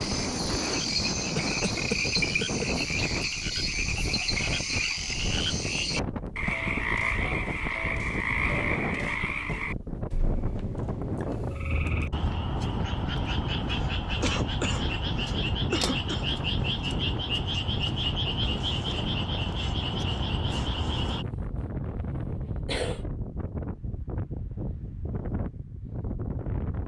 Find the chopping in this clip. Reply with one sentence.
You can't hear the chopping here.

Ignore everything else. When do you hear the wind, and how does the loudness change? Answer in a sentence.
The wind can be heard from 0.0 to 26.8 s, at a steady volume.